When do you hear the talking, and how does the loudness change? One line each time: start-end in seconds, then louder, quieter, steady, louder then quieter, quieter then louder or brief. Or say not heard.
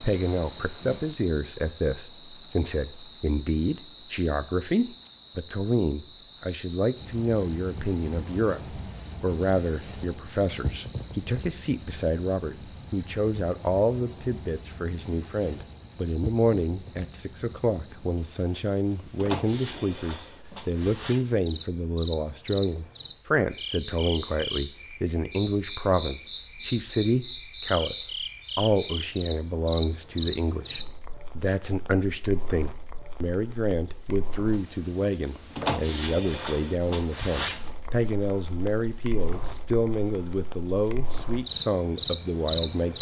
0.0-42.9 steady.